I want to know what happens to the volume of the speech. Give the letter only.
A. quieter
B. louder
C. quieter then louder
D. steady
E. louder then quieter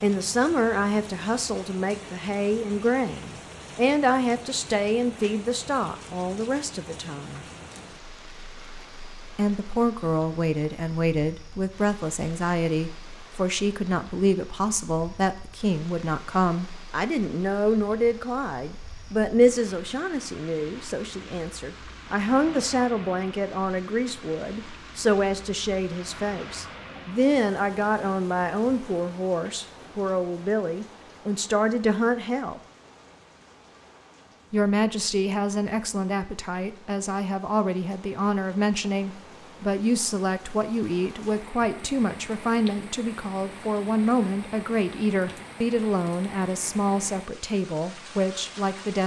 D.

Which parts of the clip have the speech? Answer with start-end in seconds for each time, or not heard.
0.0-7.5, 9.3-32.6, 34.5-49.0.